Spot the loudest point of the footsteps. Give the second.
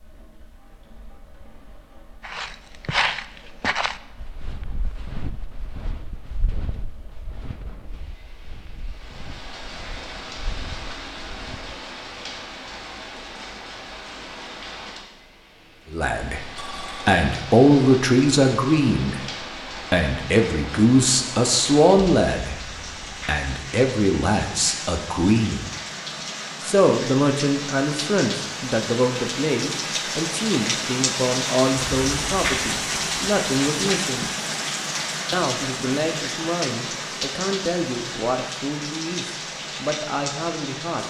3 s.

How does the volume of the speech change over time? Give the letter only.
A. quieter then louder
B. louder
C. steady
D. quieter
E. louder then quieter
D.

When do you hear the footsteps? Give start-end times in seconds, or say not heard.
2.2-11.8.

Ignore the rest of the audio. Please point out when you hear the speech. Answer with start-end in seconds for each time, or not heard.
15.9-19.2, 19.9-25.7, 26.6-34.2, 35.3-41.0.